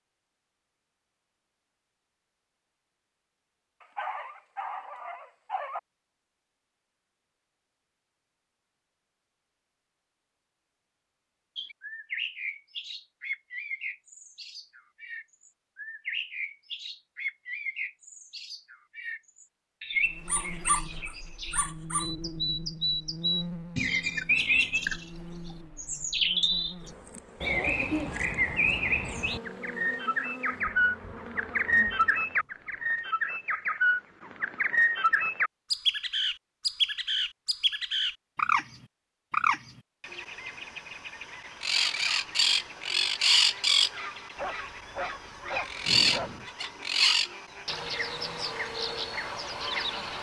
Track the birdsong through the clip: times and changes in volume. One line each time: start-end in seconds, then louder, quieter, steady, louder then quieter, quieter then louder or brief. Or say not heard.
11.6-25.1 louder
25.8-50.1 steady.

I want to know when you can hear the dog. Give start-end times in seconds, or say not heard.
3.8-5.8, 20.2-22.1, 44.4-46.5.